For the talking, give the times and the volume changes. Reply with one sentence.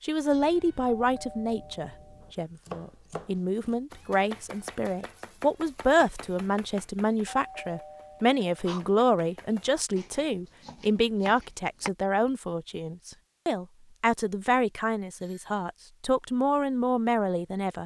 The talking can be heard from 0.0 to 17.8 s, at a steady volume.